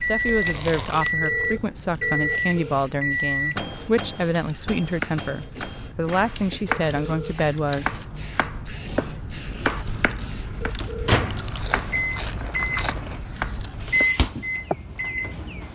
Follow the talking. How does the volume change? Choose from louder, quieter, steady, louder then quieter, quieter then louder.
steady.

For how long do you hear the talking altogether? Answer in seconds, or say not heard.
8 s.